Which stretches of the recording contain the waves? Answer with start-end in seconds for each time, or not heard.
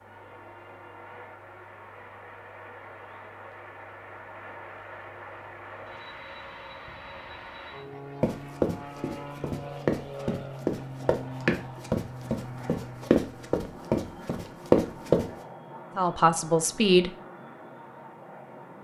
not heard.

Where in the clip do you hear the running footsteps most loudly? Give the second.
15 s.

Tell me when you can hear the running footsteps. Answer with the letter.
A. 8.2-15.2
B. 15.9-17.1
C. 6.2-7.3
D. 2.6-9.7
A.